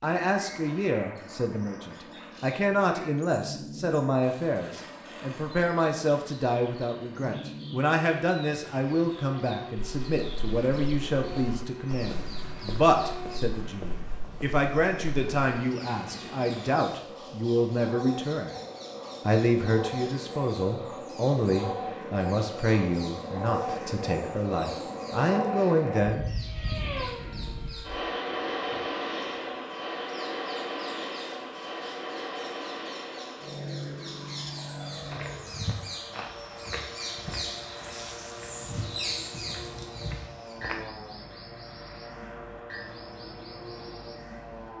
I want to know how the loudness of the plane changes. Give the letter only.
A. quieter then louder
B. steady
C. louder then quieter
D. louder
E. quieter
C.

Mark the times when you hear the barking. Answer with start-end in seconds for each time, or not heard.
not heard.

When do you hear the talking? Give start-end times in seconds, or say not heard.
0.0-18.6, 19.2-26.2.